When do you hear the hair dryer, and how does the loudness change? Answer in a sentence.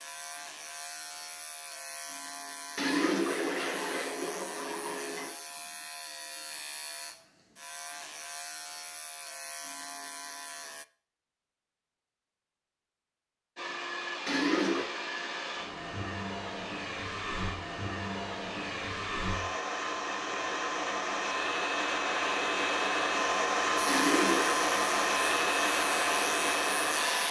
You can hear the hair dryer from 13.6 to 27.2 s, getting louder.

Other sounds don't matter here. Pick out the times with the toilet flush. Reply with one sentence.
The toilet flush can be heard from 2.8 to 5.3 s, from 14.2 to 14.9 s and from 23.9 to 24.6 s.